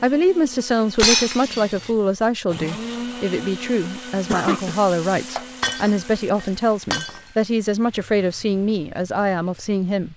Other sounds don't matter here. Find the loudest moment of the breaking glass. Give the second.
1 s.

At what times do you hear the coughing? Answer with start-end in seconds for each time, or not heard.
4.2-4.8.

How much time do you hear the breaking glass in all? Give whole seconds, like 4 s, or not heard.
3 s.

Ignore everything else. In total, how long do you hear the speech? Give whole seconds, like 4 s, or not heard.
10 s.